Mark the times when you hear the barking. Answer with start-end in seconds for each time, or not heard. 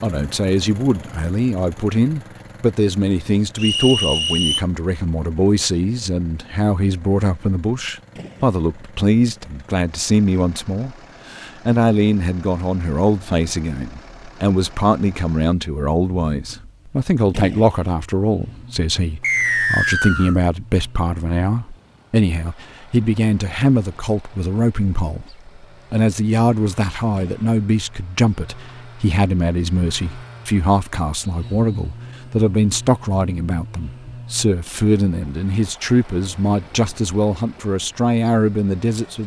not heard.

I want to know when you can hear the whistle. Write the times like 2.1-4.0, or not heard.
3.5-4.6, 19.2-20.4, 31.4-31.9.